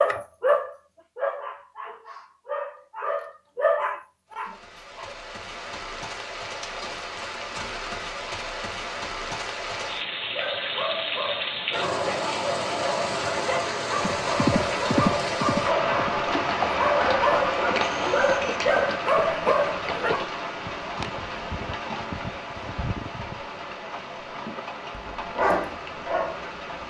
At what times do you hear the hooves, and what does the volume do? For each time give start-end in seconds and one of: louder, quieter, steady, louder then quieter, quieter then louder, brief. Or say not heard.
13.9-23.6 quieter.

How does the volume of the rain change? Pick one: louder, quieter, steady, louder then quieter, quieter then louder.
louder then quieter.